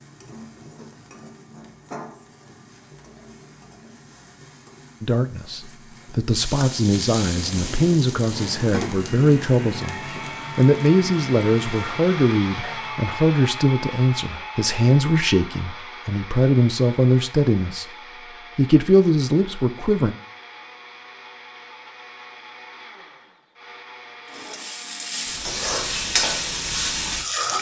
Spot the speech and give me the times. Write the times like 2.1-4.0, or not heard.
5.0-17.9, 18.6-20.1.